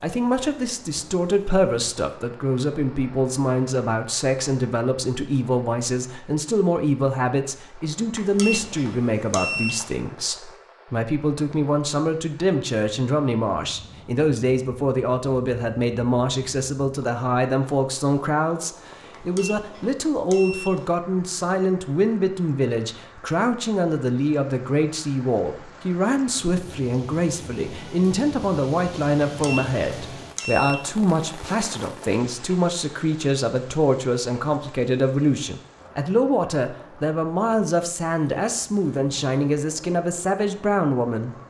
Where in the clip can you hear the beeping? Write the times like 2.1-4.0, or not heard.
8.2-9.9, 19.1-20.9, 29.2-30.9.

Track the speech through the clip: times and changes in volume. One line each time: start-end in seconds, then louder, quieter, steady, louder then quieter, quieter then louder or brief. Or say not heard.
0.0-41.4 steady.